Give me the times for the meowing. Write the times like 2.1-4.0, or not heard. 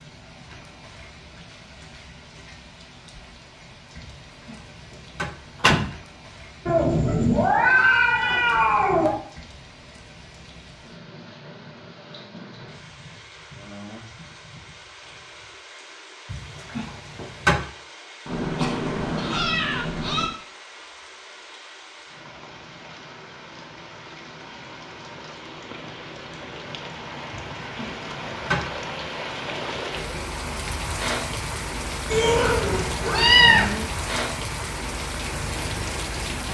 6.7-9.2, 18.2-20.2, 32.1-33.7.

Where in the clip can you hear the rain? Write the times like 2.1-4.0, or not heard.
0.0-36.4.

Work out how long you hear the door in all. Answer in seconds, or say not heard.
4 s.